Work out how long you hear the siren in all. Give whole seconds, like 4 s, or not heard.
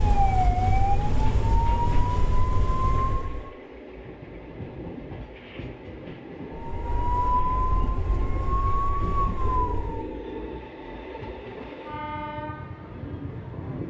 7 s.